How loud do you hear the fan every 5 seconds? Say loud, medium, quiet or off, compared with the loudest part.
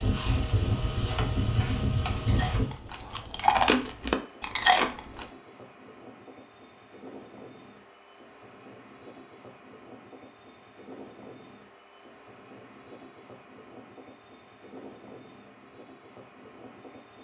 loud, quiet, quiet, quiet.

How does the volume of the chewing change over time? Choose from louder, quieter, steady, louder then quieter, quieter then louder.
louder.